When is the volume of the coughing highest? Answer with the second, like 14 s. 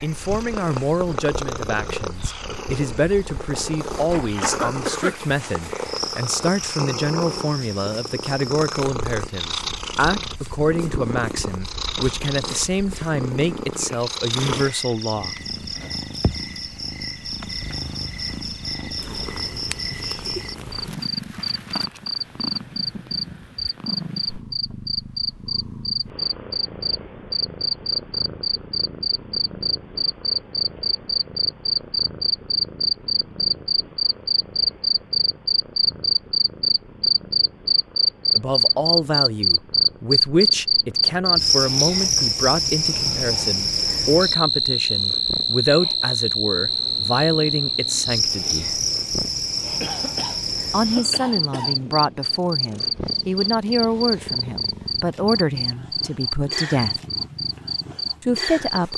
5 s.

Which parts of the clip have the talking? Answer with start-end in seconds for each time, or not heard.
0.0-15.3, 38.4-48.8, 50.7-57.0, 58.2-58.9.